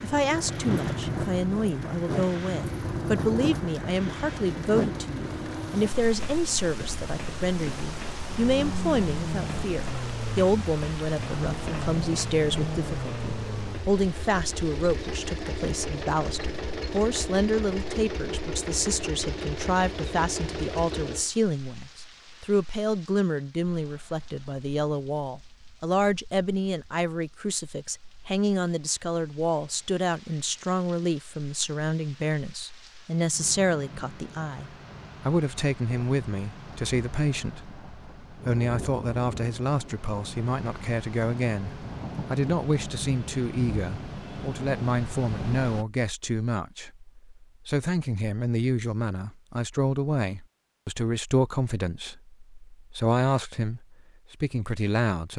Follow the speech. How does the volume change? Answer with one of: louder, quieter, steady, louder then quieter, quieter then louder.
steady.